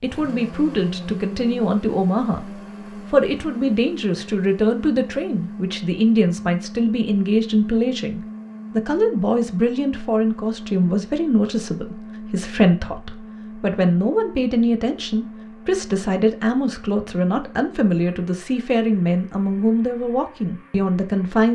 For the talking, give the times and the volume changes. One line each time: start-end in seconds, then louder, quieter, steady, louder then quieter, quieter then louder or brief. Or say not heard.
0.0-21.5 steady.